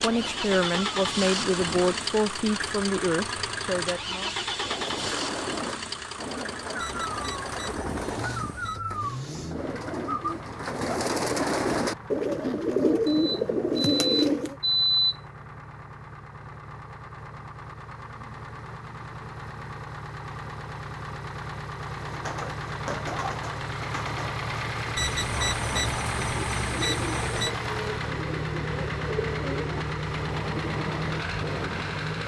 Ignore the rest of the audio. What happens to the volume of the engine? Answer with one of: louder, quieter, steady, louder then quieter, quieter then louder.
quieter then louder.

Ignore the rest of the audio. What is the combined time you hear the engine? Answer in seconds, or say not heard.
32 s.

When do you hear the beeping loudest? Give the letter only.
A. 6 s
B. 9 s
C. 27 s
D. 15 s
D.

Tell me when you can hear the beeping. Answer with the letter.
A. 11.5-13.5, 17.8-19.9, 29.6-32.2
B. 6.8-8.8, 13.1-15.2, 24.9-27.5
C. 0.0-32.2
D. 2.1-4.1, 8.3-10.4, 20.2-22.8
B.